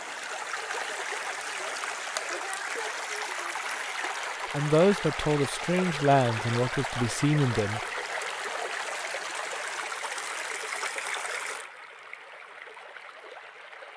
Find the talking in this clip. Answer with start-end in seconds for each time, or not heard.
4.5-7.8.